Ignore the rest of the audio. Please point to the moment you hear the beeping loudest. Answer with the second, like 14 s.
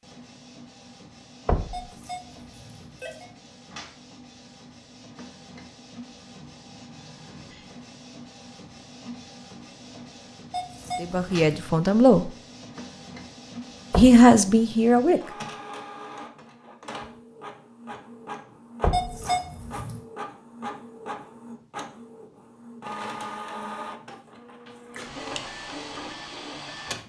19 s.